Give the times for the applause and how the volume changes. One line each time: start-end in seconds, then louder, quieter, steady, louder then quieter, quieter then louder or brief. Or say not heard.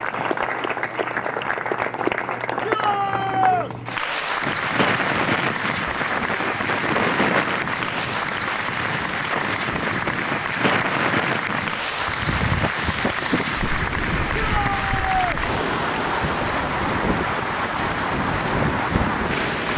0.0-19.7 steady.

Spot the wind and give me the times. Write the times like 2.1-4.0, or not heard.
4.4-19.7.